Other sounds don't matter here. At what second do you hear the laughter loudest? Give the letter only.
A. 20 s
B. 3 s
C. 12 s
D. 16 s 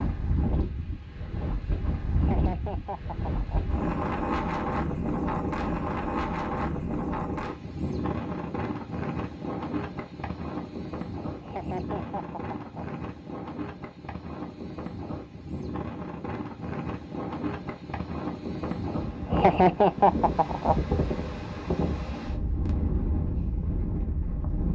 A.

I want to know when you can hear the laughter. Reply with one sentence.
The laughter can be heard from 2.1 to 3.6 s, from 11.4 to 12.8 s and from 19.2 to 20.8 s.